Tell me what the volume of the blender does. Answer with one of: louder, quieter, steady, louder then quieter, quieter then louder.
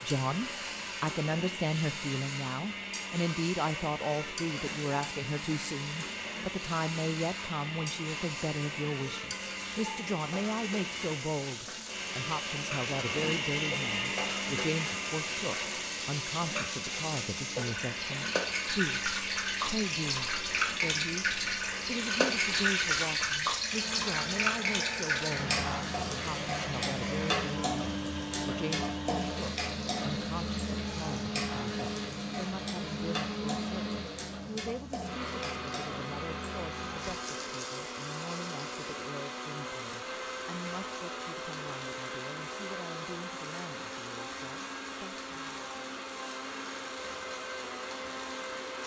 steady.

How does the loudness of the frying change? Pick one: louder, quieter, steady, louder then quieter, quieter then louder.
louder then quieter.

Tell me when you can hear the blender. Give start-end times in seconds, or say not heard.
0.0-48.8.